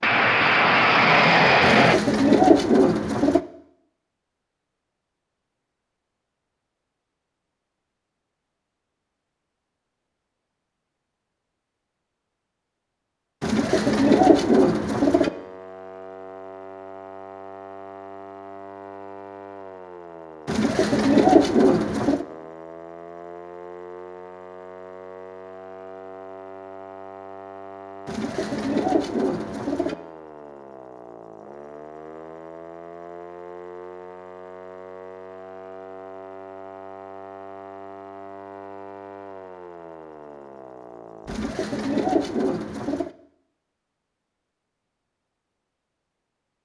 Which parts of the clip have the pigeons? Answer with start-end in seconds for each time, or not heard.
1.6-3.4, 13.4-15.3, 20.4-22.2, 28.1-29.9, 41.2-43.1.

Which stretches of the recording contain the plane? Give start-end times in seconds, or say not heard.
0.0-2.0.